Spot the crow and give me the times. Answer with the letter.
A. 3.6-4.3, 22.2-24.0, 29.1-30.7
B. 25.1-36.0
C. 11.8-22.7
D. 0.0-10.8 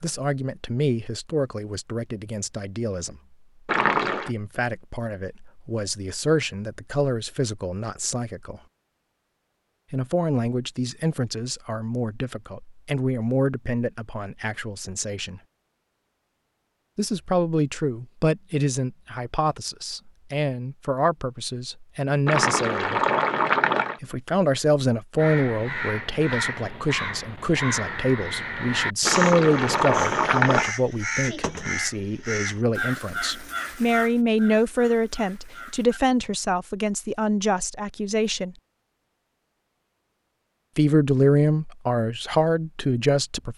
B.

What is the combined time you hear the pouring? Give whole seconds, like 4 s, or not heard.
4 s.